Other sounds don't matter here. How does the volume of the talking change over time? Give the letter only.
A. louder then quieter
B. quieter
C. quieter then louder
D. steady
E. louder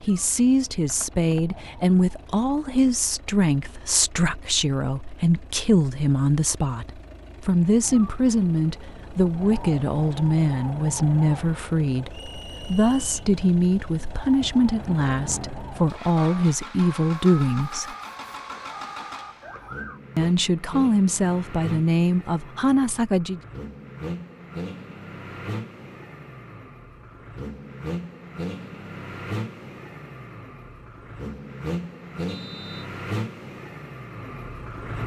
D.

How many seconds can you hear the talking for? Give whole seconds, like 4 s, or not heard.
21 s.